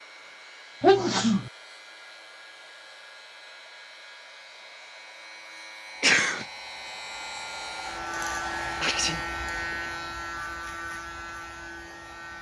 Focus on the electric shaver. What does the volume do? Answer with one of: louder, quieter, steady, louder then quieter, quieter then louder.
louder.